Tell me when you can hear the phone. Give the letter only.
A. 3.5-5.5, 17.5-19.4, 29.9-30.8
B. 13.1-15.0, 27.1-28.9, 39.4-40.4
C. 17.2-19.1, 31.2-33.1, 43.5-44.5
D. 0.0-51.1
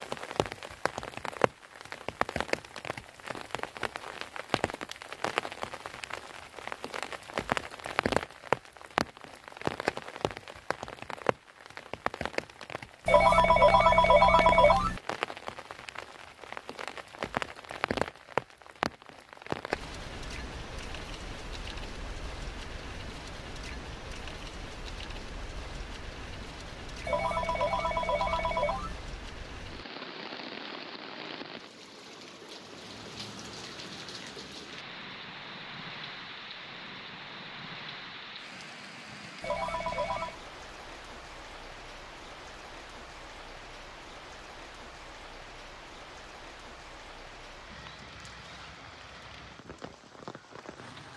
B.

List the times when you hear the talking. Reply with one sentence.
You can't hear the talking here.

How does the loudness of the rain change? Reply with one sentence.
The loudness of the rain goes down.